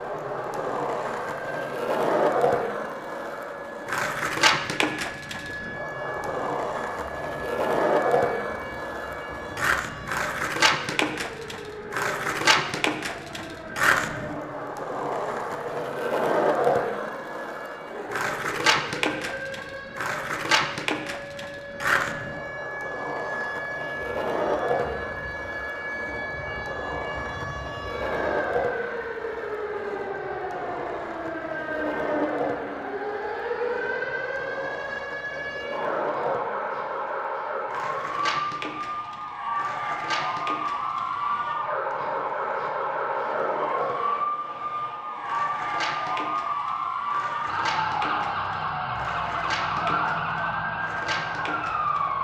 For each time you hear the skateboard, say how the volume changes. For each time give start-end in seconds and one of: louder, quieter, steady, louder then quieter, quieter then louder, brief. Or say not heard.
0.0-52.2 quieter.